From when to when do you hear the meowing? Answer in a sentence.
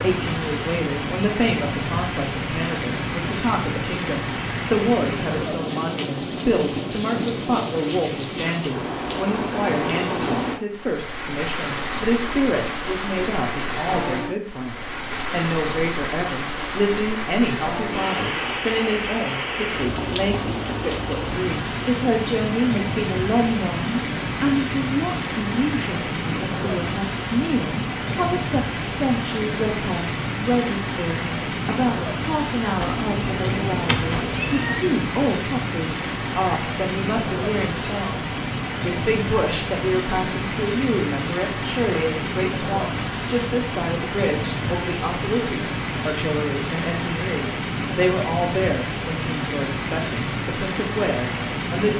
You can hear the meowing from 32.8 to 34.8 s.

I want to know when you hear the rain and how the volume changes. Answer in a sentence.
You can hear the rain from 0.0 to 51.9 s, at a steady volume.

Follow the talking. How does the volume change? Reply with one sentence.
The loudness of the talking stays about the same.